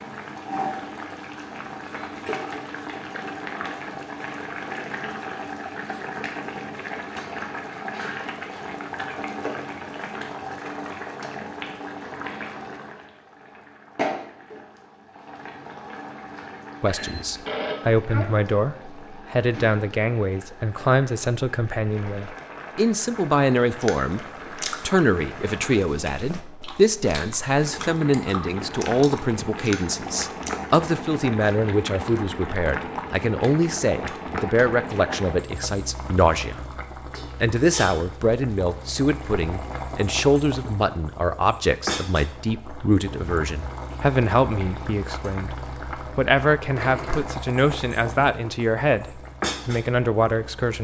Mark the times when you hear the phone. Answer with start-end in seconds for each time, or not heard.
16.9-18.2.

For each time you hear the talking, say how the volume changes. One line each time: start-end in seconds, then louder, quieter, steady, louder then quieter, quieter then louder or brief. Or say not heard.
16.8-36.6 steady
37.4-50.7 steady.